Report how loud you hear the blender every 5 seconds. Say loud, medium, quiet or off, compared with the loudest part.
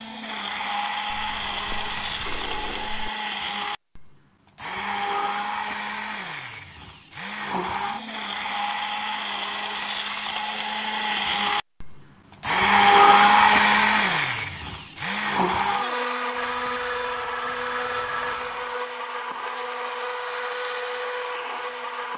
medium, medium, loud, medium, medium.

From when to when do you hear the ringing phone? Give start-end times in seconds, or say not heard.
1.1-3.1, 16.4-18.8.